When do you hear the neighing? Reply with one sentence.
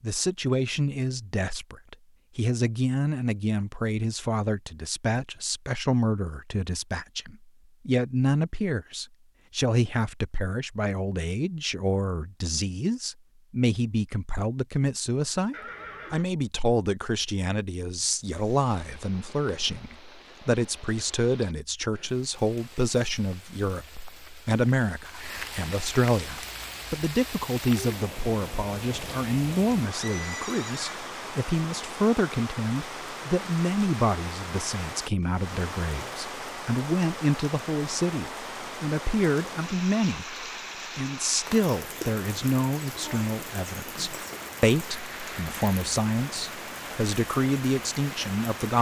The neighing can be heard from 15.5 to 16.3 s and from 29.9 to 31.1 s.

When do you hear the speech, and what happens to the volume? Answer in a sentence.
The speech can be heard from 0.0 to 48.7 s, at a steady volume.